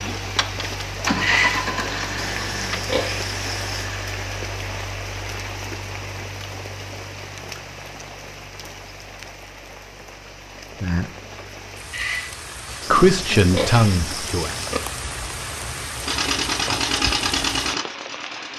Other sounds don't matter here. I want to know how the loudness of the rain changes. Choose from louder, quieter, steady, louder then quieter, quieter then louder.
quieter then louder.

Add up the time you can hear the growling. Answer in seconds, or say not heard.
2 s.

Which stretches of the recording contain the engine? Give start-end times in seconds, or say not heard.
0.0-4.5, 16.0-18.5.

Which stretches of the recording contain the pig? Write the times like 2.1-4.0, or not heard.
2.3-3.9, 12.8-14.8.